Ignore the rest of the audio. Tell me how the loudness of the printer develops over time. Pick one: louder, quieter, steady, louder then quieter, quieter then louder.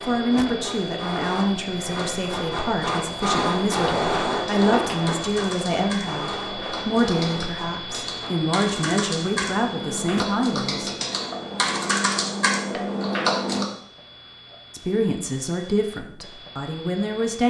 louder then quieter.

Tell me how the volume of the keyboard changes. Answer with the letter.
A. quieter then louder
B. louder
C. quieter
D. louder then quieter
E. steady
B.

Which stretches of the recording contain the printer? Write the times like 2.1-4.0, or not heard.
0.0-8.3.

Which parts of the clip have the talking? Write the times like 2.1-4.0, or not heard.
0.0-10.9, 14.7-17.4.